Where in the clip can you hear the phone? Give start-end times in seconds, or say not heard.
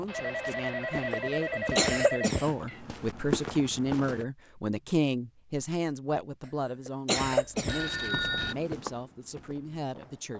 0.1-2.8, 7.2-8.6.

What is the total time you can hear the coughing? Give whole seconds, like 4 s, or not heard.
2 s.